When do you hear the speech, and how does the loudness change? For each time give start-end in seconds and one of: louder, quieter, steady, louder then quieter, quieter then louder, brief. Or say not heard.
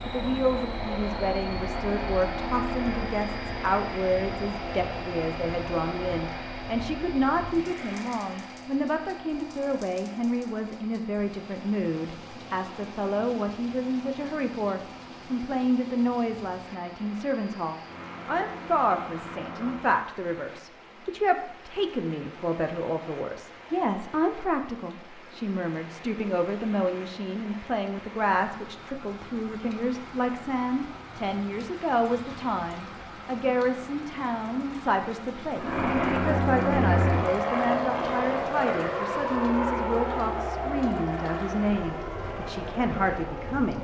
0.1-43.7 steady.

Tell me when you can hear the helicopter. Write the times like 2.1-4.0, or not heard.
0.0-19.9, 35.5-43.7.